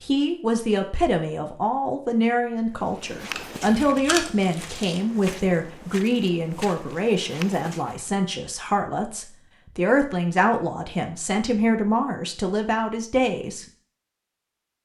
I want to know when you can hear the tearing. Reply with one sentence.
The tearing can be heard from 3.3 to 5.0 s.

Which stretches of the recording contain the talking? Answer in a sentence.
You can hear the talking from 0.0 to 13.7 s.